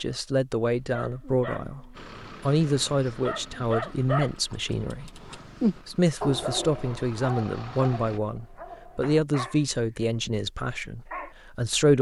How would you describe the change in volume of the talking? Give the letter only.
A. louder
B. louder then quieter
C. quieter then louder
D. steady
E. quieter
D.